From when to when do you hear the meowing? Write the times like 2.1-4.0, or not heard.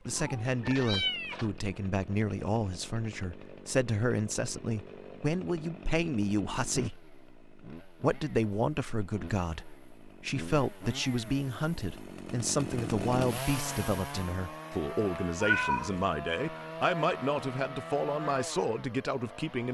0.1-1.5, 15.4-16.0.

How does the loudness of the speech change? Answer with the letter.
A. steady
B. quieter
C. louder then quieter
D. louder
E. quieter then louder
A.